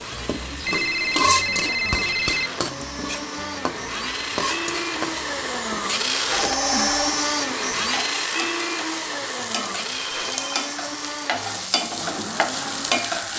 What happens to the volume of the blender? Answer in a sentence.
The loudness of the blender goes up, then down.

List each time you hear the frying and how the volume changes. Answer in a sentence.
The frying can be heard from 0.0 to 13.3 s, getting quieter then louder.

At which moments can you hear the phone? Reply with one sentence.
The phone can be heard from 0.7 to 2.5 s, from 6.3 to 7.2 s and from 10.1 to 10.5 s.